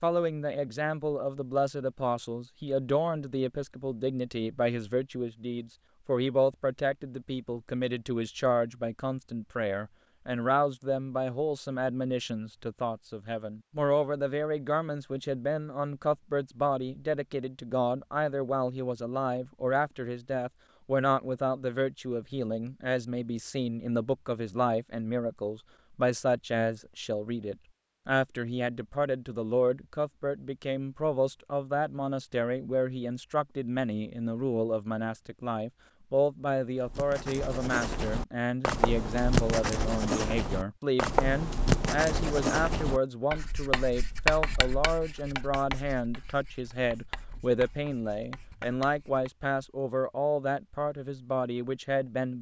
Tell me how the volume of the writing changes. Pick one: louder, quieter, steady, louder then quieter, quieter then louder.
quieter.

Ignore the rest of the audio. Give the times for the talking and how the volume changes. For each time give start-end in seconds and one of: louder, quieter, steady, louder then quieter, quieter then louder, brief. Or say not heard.
0.0-52.3 steady.